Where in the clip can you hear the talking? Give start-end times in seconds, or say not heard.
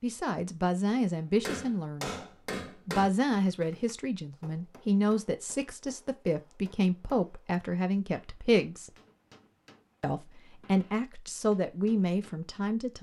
0.0-2.1, 2.9-8.9, 10.0-12.9.